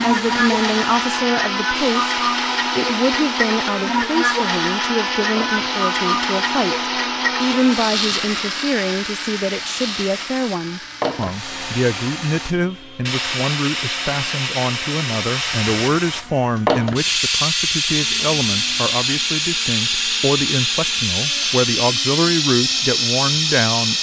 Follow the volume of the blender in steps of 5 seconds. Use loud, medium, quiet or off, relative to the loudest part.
loud, loud, quiet, quiet, quiet.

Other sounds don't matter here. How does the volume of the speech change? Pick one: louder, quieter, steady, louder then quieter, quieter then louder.
steady.